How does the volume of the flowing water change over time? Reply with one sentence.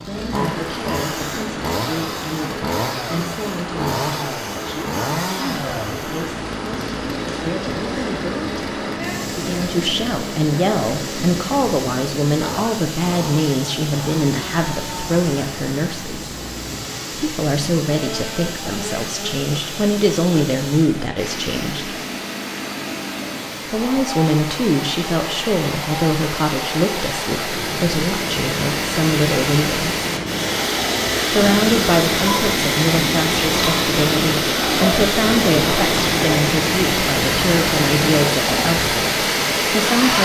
The volume of the flowing water goes up.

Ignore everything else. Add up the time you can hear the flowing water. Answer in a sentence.
You can hear the flowing water for 40 seconds altogether.